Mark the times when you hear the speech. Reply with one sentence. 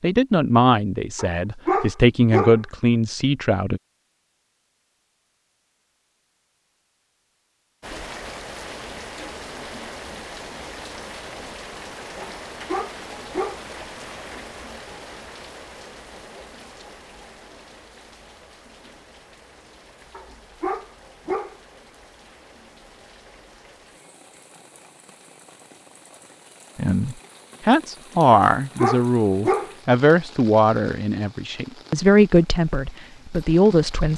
The speech can be heard from 0.0 to 3.8 s and from 26.8 to 34.1 s.